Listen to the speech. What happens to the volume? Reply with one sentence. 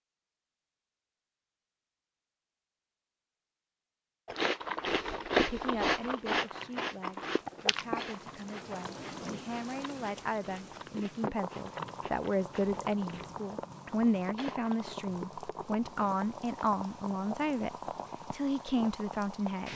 The loudness of the speech goes up.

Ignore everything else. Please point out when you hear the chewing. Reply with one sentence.
You can hear the chewing from 4.2 to 14.9 s.